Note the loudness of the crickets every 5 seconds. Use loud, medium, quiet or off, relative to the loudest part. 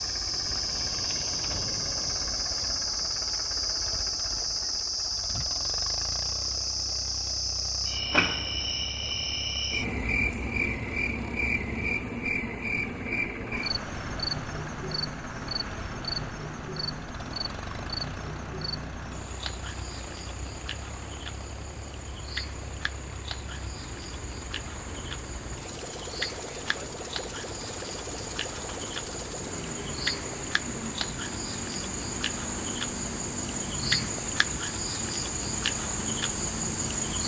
loud, loud, loud, medium, medium, medium, loud, loud.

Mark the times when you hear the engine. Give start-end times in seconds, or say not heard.
0.0-37.2.